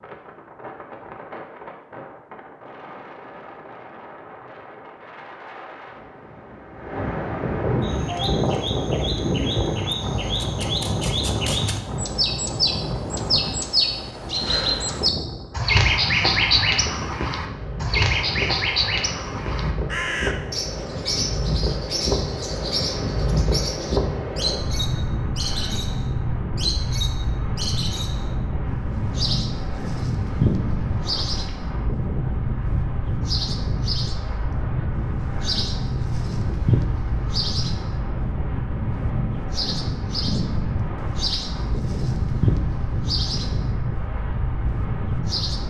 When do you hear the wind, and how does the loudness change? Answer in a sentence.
You can hear the wind from 0.0 to 45.6 s, at a steady volume.